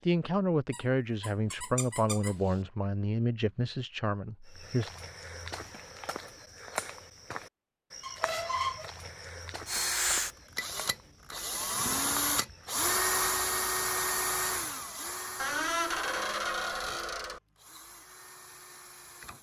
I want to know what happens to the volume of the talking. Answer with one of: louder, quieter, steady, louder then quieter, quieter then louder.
quieter.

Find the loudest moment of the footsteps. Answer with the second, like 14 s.
7 s.